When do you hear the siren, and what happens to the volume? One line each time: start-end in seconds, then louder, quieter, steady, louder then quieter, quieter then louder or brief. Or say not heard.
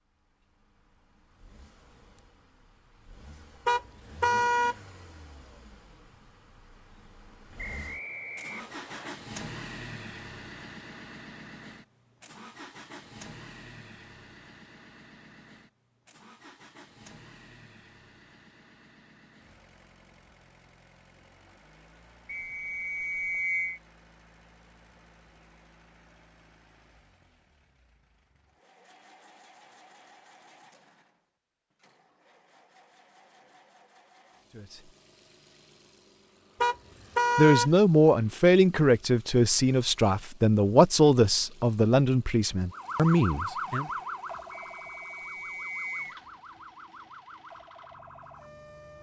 42.7-48.9 quieter.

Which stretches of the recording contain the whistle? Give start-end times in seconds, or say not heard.
7.5-9.1, 22.2-23.8, 44.5-46.2.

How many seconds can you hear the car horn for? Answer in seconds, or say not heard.
2 s.